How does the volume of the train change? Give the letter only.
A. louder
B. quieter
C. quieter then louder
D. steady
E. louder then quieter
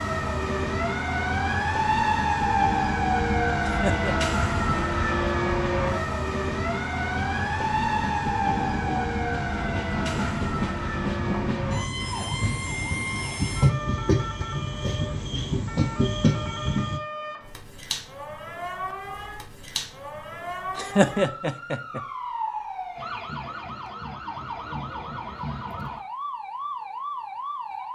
A.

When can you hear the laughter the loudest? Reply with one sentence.
The loudest moment of the laughter is at 21 seconds.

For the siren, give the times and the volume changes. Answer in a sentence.
You can hear the siren from 0.0 to 27.9 s, getting quieter.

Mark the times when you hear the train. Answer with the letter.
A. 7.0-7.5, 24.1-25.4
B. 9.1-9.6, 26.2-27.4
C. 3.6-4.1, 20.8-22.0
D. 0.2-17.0
D.